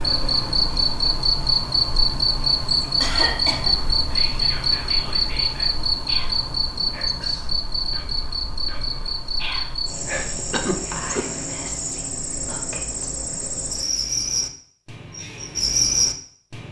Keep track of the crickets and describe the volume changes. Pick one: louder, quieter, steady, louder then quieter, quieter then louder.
quieter then louder.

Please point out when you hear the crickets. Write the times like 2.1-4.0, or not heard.
0.0-16.6.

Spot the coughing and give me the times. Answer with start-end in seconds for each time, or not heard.
3.0-3.8, 10.5-11.2.